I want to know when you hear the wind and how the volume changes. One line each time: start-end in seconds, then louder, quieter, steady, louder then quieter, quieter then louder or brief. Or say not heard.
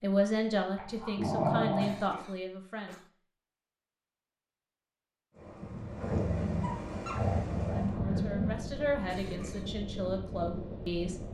5.3-11.2 steady.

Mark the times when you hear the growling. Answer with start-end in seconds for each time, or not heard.
0.8-2.0, 6.0-8.6.